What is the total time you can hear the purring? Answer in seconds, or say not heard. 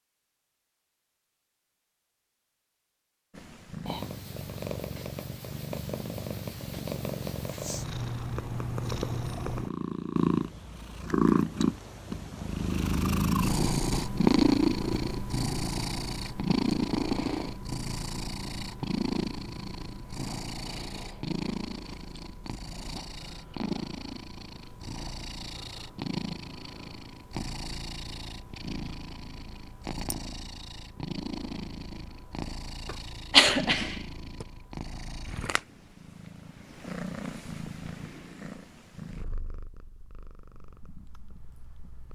39 s.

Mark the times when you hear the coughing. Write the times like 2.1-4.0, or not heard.
32.9-34.5.